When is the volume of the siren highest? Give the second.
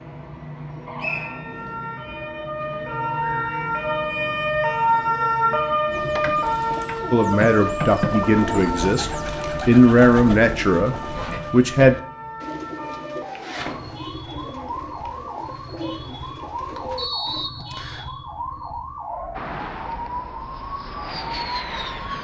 5 s.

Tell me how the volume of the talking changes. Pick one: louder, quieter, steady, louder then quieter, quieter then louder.
louder then quieter.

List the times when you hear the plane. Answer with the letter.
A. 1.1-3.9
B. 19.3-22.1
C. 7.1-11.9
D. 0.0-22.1
B.